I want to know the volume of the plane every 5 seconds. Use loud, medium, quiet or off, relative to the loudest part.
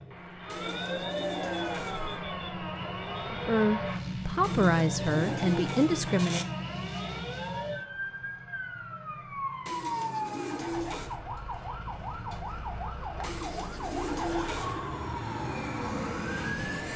loud, loud, medium, loud.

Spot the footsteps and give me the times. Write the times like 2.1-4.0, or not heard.
not heard.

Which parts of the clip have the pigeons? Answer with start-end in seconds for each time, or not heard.
0.5-2.2, 4.4-6.5, 9.7-11.2, 13.2-14.9.